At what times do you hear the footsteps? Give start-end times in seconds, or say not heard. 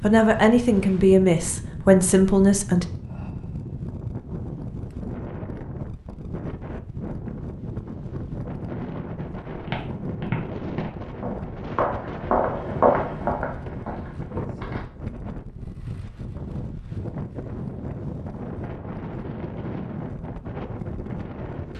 9.4-14.8.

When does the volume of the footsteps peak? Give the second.
13 s.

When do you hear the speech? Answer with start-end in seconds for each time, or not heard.
0.0-2.9.